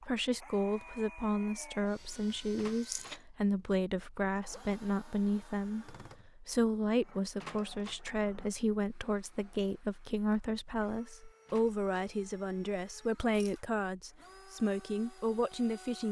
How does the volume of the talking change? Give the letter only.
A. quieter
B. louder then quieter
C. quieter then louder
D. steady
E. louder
D.